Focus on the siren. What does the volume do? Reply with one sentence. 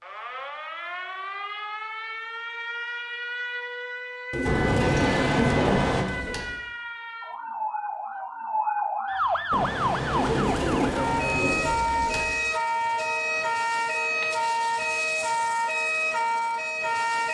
The loudness of the siren goes up.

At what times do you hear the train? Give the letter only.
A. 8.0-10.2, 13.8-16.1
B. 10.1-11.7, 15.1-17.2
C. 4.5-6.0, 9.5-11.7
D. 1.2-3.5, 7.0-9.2
C.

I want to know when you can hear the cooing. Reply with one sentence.
The cooing can be heard from 4.3 to 6.5 s and from 10.1 to 12.3 s.